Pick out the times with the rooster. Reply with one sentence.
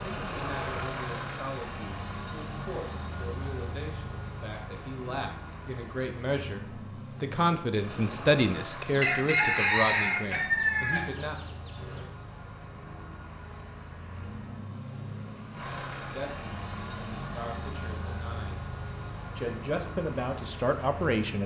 You can hear the rooster from 8.8 to 12.1 s.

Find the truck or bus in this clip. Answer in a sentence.
You can hear the truck or bus from 0.0 to 21.4 s.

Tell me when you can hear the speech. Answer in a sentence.
You can hear the speech from 0.0 to 11.4 s, from 16.0 to 18.7 s and from 19.4 to 21.4 s.